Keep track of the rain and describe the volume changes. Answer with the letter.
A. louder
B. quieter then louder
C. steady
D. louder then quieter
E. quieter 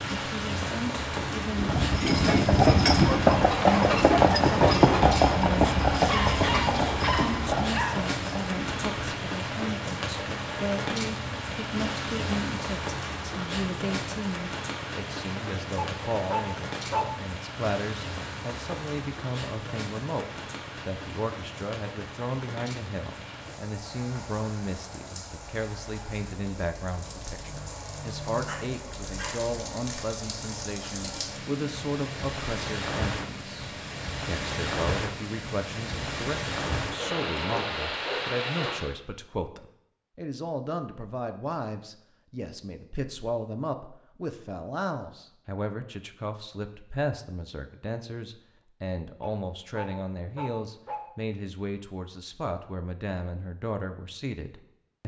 B.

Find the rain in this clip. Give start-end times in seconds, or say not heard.
0.0-39.0.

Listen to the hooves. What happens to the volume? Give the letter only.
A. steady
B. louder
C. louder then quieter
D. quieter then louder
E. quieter
E.